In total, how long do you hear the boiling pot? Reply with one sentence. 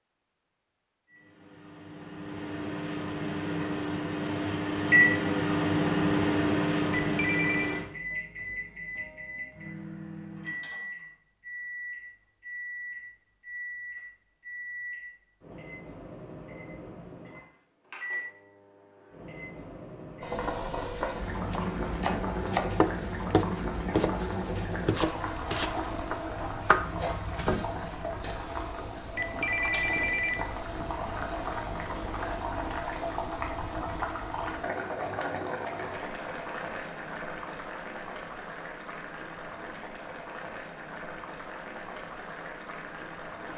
The boiling pot can be heard for 23 seconds in total.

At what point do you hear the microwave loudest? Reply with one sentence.
The loudest moment of the microwave is at 5 seconds.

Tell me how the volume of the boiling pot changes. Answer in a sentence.
The volume of the boiling pot goes down.